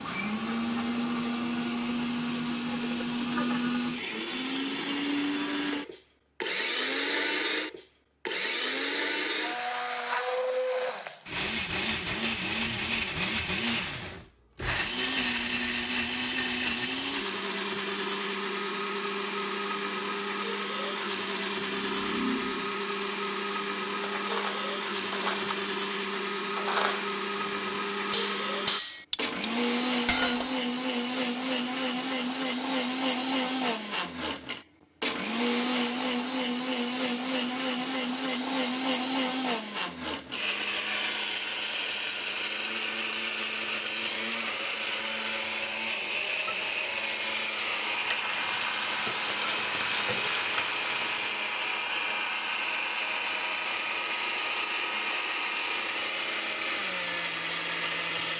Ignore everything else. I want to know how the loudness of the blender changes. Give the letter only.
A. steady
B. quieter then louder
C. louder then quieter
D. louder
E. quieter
A.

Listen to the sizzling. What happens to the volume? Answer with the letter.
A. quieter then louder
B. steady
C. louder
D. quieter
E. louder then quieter
C.